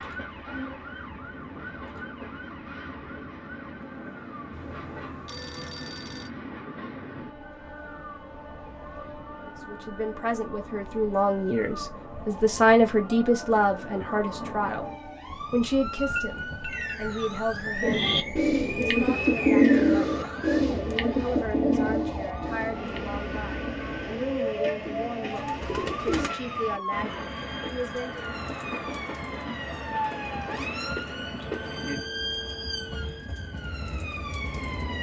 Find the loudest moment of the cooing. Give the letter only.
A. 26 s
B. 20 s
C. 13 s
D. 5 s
B.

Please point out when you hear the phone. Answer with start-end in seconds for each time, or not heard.
4.5-6.3, 16.1-17.0, 31.4-33.2.